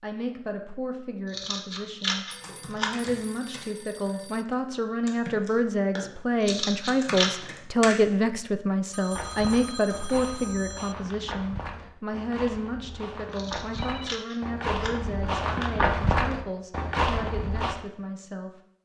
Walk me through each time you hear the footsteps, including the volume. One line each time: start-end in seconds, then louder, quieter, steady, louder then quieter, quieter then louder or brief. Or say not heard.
9.1-17.8 louder.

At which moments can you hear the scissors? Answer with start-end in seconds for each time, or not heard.
1.3-3.2, 6.4-7.3, 13.3-14.9.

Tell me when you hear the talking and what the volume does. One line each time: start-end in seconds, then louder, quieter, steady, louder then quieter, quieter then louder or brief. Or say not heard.
0.0-18.5 louder then quieter.